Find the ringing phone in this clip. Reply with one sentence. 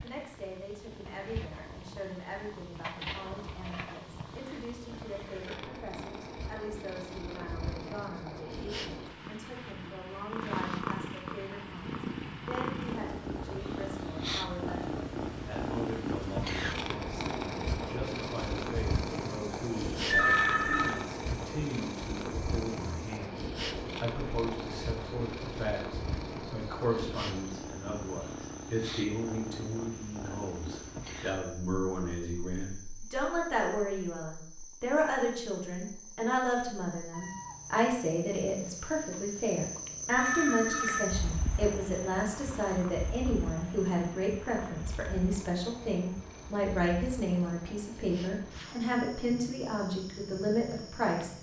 You can hear the ringing phone from 20.1 to 20.9 s and from 40.1 to 41.0 s.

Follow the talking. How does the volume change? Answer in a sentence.
The loudness of the talking goes up.